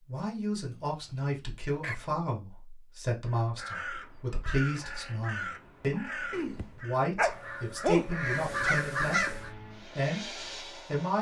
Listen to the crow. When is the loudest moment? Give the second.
9 s.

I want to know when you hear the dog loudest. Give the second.
8 s.